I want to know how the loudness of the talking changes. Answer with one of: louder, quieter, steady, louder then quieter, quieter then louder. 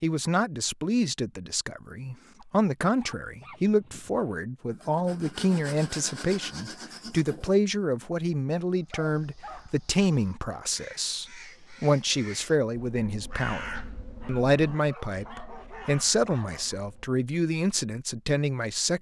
steady.